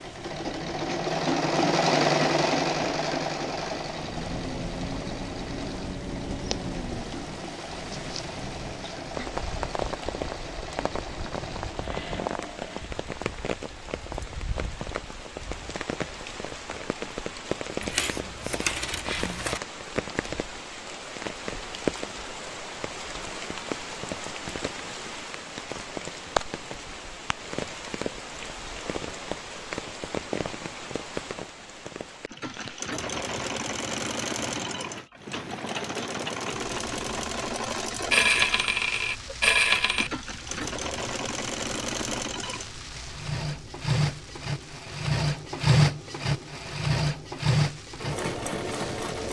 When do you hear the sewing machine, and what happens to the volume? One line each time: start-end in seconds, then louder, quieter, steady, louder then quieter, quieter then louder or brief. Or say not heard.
0.0-12.9 quieter
32.2-49.2 louder.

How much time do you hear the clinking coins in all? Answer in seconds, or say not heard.
4 s.